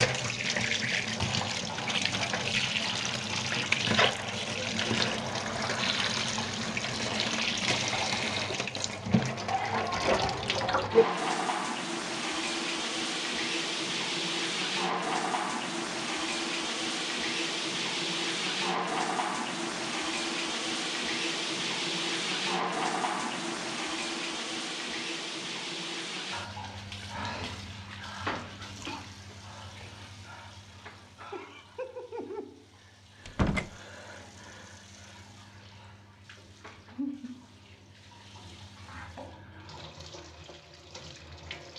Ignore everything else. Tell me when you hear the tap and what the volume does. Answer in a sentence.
You can hear the tap from 0.0 to 41.7 s, getting quieter.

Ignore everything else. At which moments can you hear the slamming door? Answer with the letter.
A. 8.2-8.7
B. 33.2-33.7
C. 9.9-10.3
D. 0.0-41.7
B.